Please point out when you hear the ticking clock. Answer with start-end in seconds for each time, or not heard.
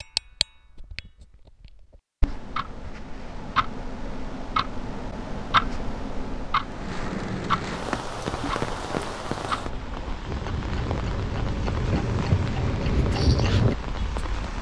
0.0-14.5.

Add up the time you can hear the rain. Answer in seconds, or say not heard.
8 s.